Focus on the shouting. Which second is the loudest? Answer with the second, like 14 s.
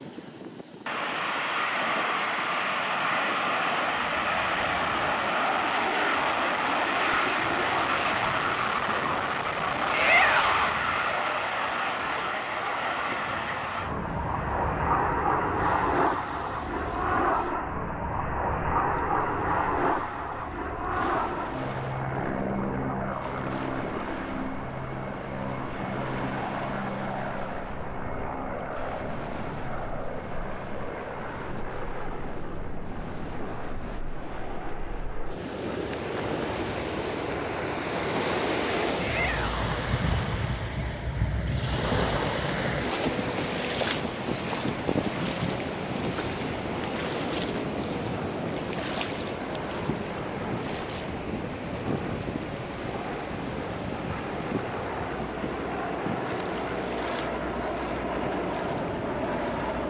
10 s.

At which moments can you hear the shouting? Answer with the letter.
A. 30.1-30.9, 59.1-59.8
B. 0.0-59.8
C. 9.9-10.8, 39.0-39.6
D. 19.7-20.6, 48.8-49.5
C.